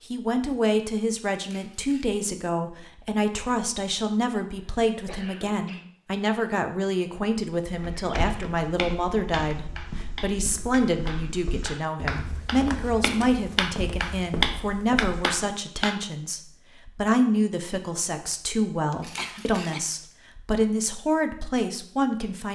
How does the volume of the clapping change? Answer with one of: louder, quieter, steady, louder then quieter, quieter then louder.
louder.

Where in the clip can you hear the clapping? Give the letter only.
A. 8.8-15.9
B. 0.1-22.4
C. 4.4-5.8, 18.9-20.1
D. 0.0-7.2
A.